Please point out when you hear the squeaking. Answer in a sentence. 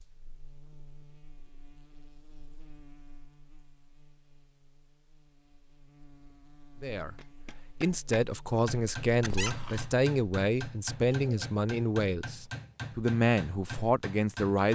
You can hear the squeaking from 9.2 to 9.9 s.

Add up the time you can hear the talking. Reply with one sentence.
The talking can be heard for 8 seconds in total.